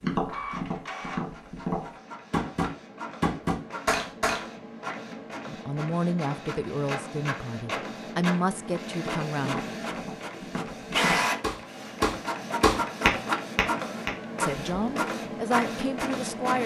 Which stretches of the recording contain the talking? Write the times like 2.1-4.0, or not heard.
5.5-9.6, 14.4-16.6.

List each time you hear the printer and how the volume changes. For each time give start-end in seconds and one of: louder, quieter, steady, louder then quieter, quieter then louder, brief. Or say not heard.
0.0-16.6 louder.